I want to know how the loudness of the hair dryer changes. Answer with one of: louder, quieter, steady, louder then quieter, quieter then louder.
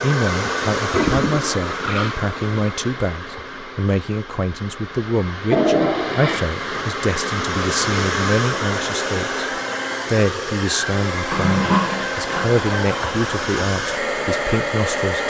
quieter then louder.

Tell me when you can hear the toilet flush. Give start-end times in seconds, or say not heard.
0.9-2.1, 5.5-6.5, 11.3-13.7.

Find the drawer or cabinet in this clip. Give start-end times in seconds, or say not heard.
not heard.